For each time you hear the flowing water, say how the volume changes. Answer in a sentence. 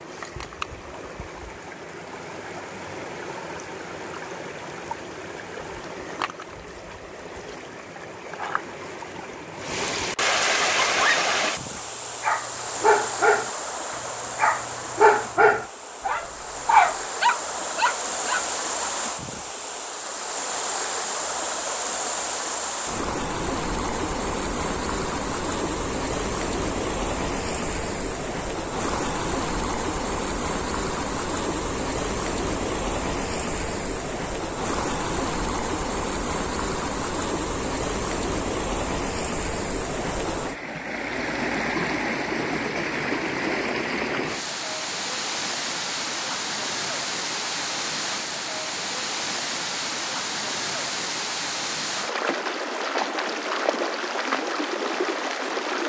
The flowing water can be heard from 0.0 to 55.8 s, at a steady volume.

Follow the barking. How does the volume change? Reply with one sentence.
The loudness of the barking goes up.